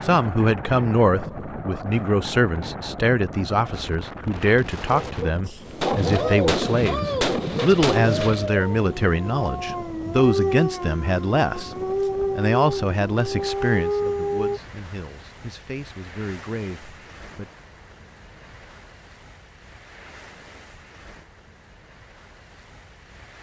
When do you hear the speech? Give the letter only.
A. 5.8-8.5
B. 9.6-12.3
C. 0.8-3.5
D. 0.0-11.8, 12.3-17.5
D.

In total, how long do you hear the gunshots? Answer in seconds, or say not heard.
3 s.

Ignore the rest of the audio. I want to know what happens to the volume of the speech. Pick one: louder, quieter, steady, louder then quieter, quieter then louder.
quieter.